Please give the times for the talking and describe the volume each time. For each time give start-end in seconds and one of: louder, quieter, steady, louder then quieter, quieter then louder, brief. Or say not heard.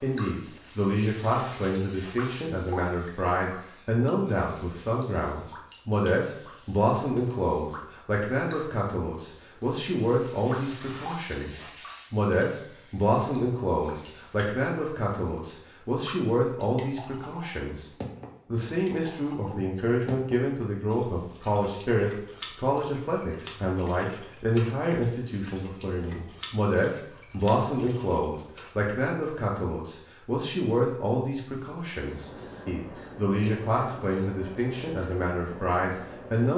0.0-36.5 steady.